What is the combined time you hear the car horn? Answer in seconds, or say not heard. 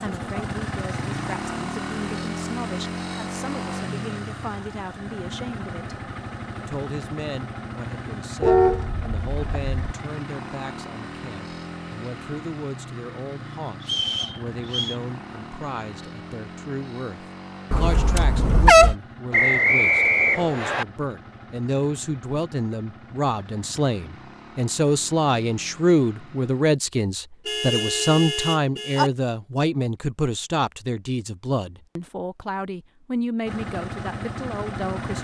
4 s.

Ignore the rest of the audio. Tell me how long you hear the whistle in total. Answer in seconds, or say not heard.
3 s.